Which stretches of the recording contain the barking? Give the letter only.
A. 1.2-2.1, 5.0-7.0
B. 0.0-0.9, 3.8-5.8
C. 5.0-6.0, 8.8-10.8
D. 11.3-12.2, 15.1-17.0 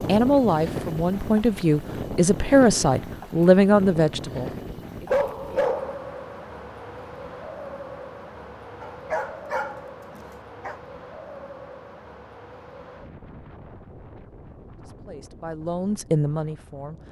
C.